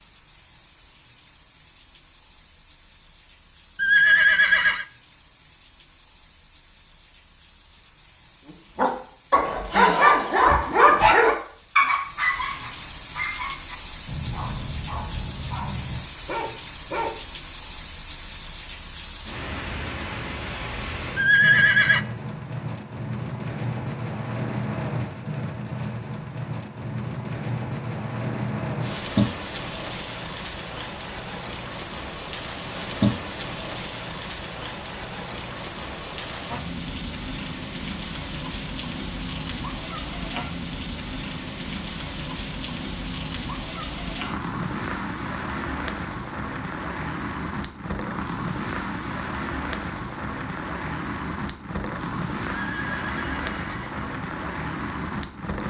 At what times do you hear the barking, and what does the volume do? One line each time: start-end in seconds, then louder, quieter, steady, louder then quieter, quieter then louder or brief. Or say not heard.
8.8-17.1 quieter.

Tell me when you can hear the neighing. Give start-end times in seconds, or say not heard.
3.8-4.8, 21.1-22.0, 52.6-54.0.